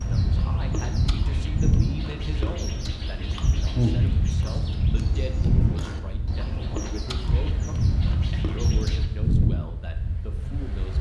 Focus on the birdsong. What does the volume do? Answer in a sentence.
The loudness of the birdsong goes up, then down.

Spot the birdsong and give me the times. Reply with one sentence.
You can hear the birdsong from 0.0 to 9.1 s.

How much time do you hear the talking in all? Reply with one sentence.
You can hear the talking for 11 seconds altogether.